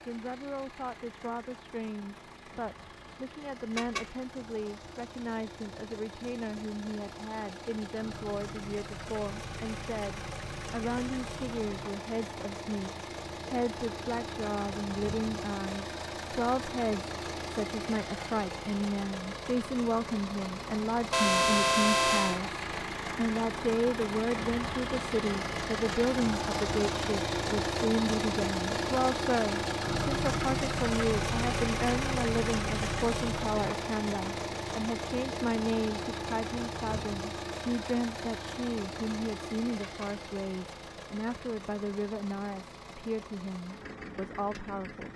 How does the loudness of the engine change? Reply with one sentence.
The volume of the engine goes up, then down.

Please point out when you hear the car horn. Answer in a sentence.
The car horn can be heard from 3.8 to 4.2 s, from 21.1 to 22.4 s and from 39.8 to 40.2 s.